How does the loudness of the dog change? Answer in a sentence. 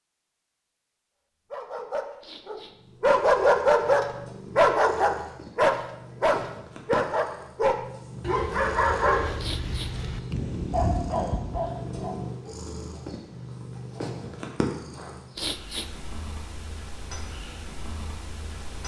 The loudness of the dog goes down.